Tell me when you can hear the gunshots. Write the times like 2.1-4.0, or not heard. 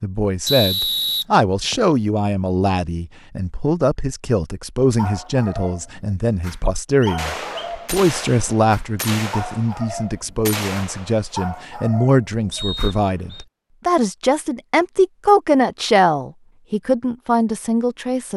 7.2-11.5.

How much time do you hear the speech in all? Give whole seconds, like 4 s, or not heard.
18 s.